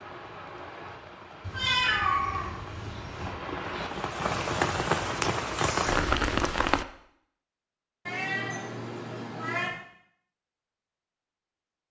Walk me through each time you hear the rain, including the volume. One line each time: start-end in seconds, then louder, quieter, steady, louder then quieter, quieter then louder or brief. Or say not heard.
0.0-6.8 louder.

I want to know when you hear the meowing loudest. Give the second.
2 s.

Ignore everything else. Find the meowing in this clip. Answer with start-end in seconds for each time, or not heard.
1.4-3.4, 8.1-9.8.